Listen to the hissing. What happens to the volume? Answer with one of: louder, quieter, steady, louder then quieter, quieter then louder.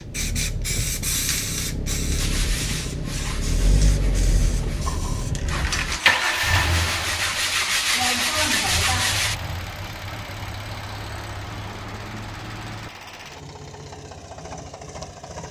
quieter.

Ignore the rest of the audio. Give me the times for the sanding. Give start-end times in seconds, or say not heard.
2.1-9.3.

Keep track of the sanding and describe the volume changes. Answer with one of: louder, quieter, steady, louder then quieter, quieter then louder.
louder.